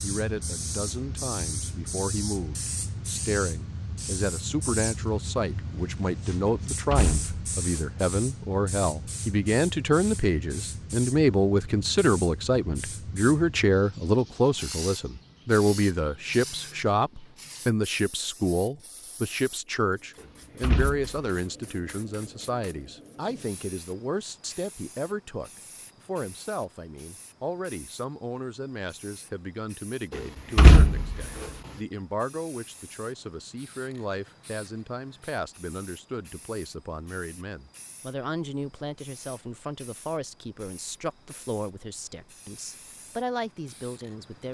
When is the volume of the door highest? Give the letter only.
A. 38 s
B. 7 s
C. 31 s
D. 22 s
C.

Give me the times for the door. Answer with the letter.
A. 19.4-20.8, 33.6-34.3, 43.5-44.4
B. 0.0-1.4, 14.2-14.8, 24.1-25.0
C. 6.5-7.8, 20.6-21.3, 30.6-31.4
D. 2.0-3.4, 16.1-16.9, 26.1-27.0
C.